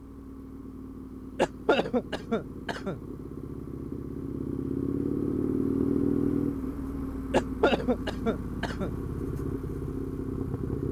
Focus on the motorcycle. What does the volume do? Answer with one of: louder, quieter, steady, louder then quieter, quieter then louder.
louder then quieter.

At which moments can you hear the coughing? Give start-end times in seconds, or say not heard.
1.4-3.0, 7.3-8.9.